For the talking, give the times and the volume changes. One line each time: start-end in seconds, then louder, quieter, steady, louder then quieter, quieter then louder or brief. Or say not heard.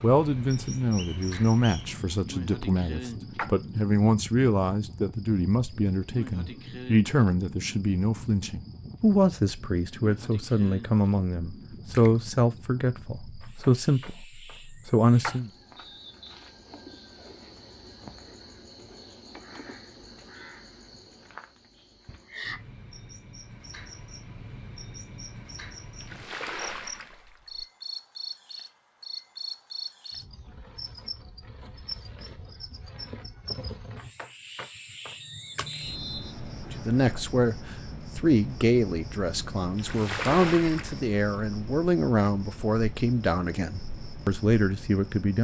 0.0-15.5 steady
36.7-45.3 steady.